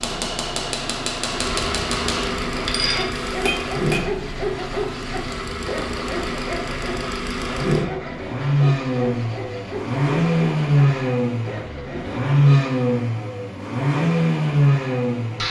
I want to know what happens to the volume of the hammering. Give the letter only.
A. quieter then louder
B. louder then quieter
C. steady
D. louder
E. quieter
C.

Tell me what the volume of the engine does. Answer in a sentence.
The loudness of the engine goes up.